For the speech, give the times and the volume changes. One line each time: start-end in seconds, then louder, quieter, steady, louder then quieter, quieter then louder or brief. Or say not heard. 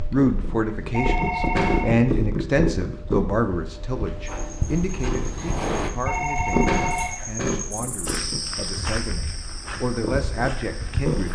0.1-11.3 quieter then louder.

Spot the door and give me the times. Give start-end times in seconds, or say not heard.
4.2-5.9.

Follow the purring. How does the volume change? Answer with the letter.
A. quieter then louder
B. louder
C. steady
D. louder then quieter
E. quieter
E.